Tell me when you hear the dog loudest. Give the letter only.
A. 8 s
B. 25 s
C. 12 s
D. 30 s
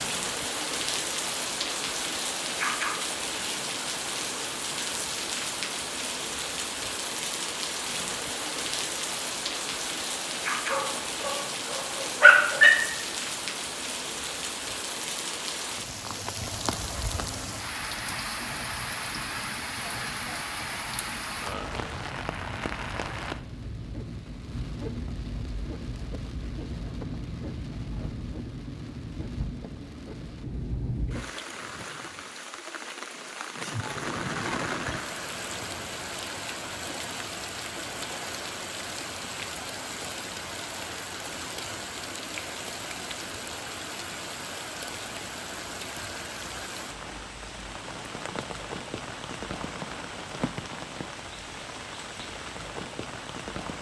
C.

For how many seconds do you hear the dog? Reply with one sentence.
You can hear the dog for 2 seconds altogether.